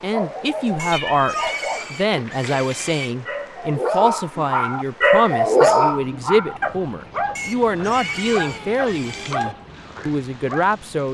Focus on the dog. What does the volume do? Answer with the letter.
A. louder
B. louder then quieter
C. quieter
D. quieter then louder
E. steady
B.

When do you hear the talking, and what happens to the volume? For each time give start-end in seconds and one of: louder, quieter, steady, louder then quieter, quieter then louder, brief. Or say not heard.
0.0-11.0 steady.